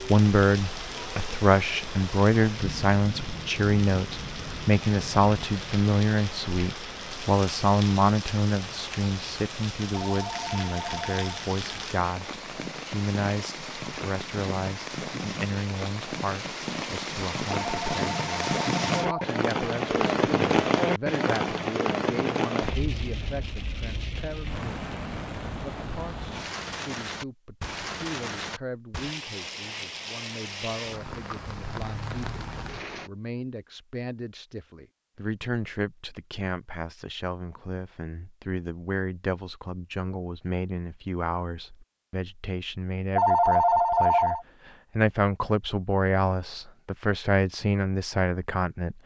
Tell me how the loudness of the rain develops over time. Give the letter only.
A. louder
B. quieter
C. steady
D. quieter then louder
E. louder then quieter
E.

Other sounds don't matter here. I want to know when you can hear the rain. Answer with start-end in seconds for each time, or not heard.
0.0-33.1.